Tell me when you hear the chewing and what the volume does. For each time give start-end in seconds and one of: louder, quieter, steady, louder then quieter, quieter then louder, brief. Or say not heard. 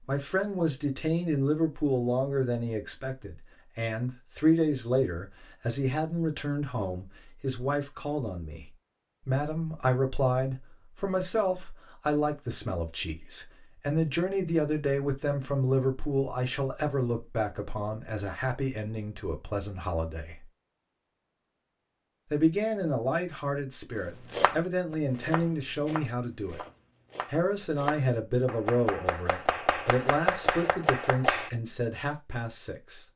not heard.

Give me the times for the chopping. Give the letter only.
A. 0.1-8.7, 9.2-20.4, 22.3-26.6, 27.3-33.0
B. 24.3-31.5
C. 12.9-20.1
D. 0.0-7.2
B.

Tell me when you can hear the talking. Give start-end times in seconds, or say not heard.
0.1-8.7, 9.2-20.4, 22.3-26.6, 27.3-33.0.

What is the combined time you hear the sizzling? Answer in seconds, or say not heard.
not heard.